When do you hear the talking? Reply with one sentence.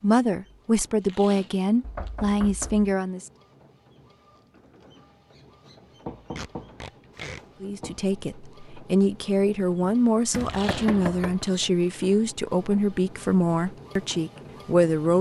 You can hear the talking from 0.0 to 3.3 s and from 7.6 to 15.1 s.